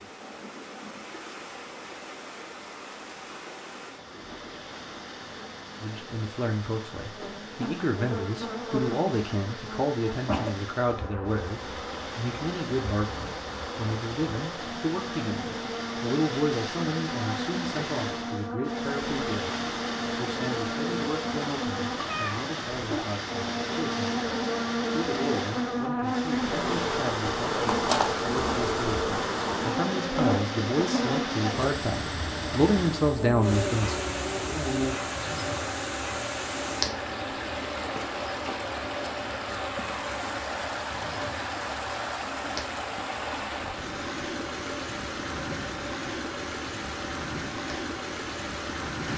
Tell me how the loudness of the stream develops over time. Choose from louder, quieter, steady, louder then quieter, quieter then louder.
louder.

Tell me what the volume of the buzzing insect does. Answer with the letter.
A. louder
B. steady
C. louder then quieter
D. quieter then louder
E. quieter
C.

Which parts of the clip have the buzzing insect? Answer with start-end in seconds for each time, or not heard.
0.0-49.1.